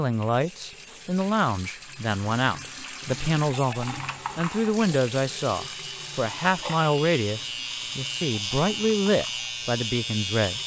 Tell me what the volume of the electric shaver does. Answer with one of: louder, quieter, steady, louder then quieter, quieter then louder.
louder.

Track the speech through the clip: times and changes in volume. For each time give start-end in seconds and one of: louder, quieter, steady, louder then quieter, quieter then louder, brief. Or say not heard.
0.0-10.6 steady.